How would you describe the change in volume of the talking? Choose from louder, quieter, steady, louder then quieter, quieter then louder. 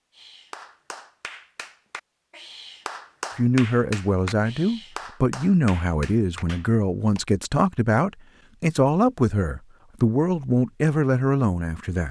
steady.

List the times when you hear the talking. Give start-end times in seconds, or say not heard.
3.4-12.0.